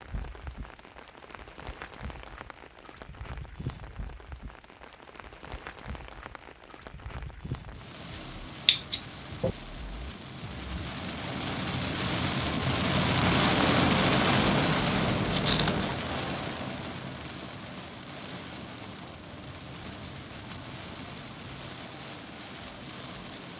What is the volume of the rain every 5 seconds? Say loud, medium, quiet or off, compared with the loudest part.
quiet, quiet, loud, medium, quiet.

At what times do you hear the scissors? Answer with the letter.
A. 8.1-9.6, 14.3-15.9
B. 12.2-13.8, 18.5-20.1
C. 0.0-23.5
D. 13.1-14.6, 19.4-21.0
A.